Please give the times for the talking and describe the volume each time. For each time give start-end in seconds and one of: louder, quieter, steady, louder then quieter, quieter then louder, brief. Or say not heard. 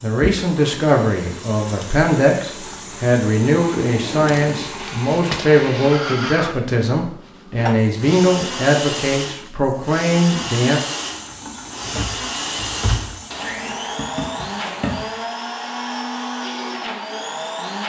0.0-10.8 steady.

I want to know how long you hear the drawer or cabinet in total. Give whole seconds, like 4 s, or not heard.
3 s.